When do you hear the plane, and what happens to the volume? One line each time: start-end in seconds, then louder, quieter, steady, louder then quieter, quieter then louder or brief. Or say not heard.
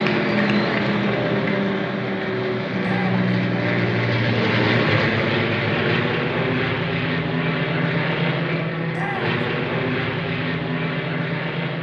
0.0-11.7 steady.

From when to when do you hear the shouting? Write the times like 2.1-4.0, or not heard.
2.8-3.3, 8.9-9.4.